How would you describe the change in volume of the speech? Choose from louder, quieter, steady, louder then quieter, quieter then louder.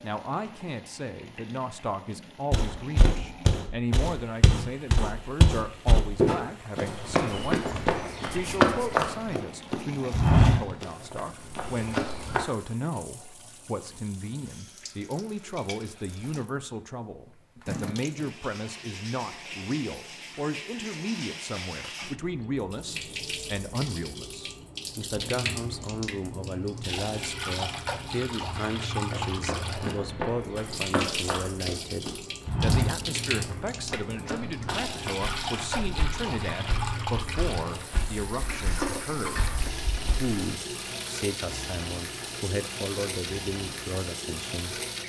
steady.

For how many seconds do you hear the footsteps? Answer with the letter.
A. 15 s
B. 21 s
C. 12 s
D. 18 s
B.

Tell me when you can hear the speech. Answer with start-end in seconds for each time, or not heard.
0.0-44.8.